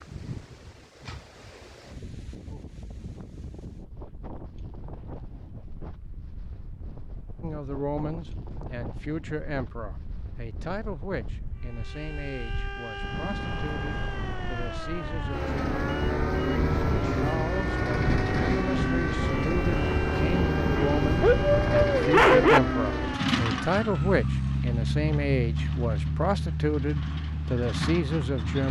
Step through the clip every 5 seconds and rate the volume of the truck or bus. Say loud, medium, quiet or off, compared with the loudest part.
off, off, quiet, loud, loud, loud.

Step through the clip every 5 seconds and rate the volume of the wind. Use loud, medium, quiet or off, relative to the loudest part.
quiet, quiet, medium, loud, loud, off.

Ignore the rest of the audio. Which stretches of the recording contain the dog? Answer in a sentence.
The dog can be heard from 20.7 to 22.6 s.